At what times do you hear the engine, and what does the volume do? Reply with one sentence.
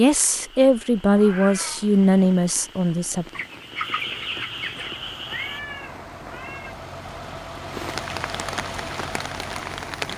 You can hear the engine from 4.7 to 10.1 s, getting louder.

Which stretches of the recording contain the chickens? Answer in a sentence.
You can hear the chickens from 3.4 to 5.0 s.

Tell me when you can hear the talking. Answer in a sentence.
You can hear the talking from 0.0 to 3.2 s.